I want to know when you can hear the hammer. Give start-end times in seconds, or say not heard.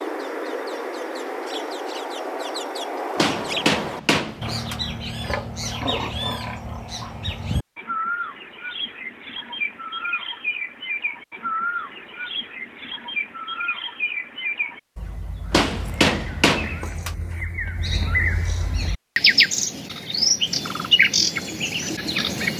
3.1-4.8, 15.5-17.1.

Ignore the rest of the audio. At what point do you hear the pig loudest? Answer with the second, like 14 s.
6 s.